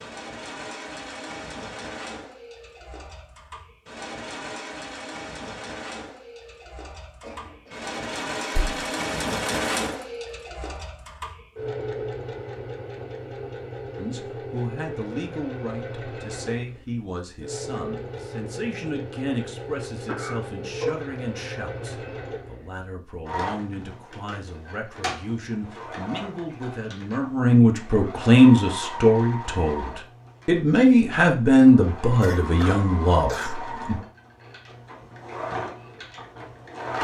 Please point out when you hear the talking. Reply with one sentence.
You can hear the talking from 13.9 to 34.0 s.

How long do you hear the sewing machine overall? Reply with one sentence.
You can hear the sewing machine for 37 seconds altogether.